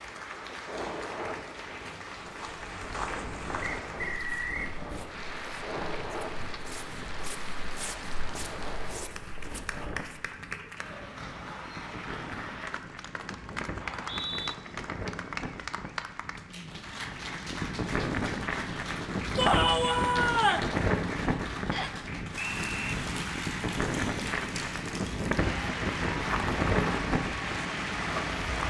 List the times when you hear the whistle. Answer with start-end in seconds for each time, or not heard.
3.6-4.8, 13.8-14.6, 21.7-22.9.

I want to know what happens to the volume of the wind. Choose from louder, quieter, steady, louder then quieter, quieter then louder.
louder.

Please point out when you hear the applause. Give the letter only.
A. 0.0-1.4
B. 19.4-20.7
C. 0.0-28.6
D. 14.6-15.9
C.